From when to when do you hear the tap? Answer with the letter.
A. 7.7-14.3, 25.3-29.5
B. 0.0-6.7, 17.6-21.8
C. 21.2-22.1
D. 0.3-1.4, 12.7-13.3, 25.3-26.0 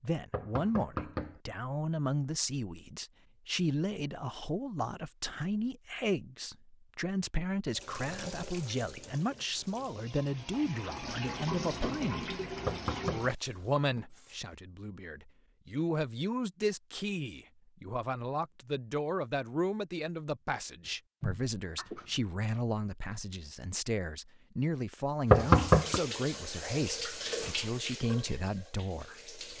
A.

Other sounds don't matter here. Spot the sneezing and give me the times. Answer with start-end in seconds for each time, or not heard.
21.2-22.1.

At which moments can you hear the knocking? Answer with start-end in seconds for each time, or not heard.
0.3-1.4, 12.7-13.3, 25.3-26.0.